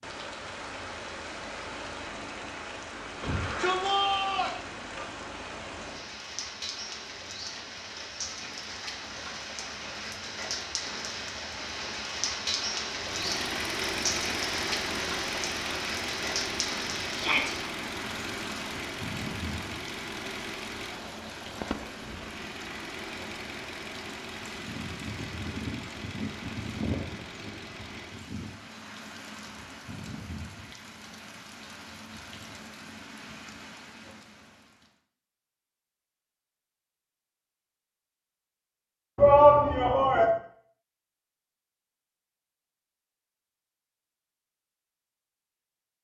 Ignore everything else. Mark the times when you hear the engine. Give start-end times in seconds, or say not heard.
12.9-28.4.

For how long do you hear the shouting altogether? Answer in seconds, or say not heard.
3 s.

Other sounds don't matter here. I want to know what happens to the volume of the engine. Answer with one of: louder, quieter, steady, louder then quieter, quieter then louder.
quieter.